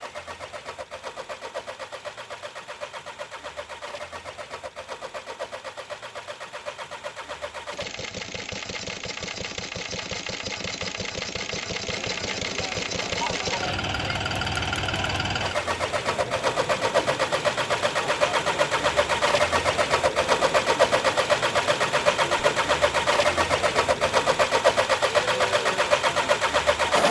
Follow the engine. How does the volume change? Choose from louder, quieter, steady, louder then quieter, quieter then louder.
louder.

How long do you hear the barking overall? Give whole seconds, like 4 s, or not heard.
not heard.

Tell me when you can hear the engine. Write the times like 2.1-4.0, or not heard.
0.0-27.0.